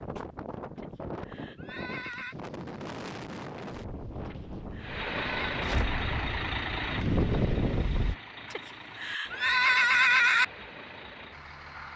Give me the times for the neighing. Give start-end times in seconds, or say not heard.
0.8-2.4, 4.2-5.7, 8.5-10.4.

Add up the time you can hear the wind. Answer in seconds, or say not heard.
8 s.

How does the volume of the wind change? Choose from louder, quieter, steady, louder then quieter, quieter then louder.
louder.